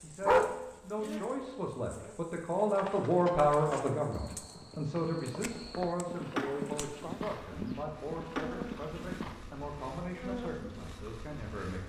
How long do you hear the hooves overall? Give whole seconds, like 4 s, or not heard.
7 s.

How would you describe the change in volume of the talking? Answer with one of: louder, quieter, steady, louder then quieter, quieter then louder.
louder then quieter.